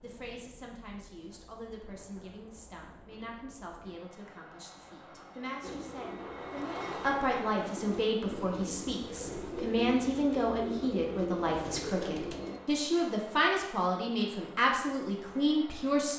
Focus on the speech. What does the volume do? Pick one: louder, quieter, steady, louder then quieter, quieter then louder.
louder.